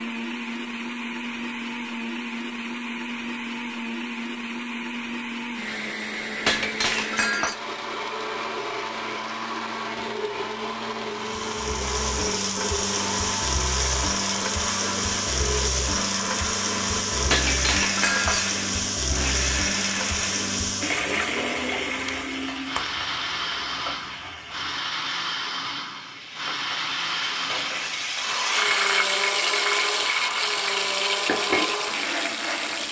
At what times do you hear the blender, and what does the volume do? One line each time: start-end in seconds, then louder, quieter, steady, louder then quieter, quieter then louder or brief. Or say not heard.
0.0-32.8 steady.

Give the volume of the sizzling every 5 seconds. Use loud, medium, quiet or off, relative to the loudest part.
off, off, loud, loud, medium, loud, loud.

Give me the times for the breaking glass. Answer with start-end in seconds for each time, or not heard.
6.5-7.5, 17.3-18.6, 21.9-22.9.